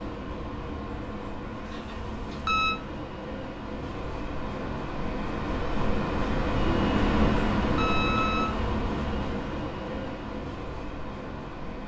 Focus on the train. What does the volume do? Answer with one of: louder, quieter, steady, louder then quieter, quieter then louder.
louder then quieter.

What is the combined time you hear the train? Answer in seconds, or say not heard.
12 s.